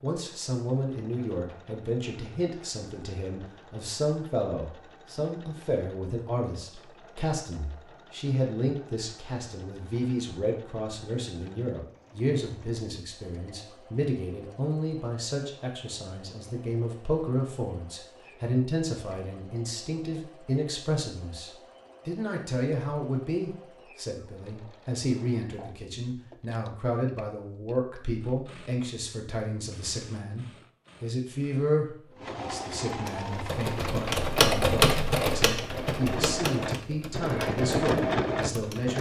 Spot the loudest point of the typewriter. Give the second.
35 s.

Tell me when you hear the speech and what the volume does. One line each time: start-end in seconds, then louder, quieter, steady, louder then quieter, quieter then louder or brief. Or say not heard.
0.0-38.9 steady.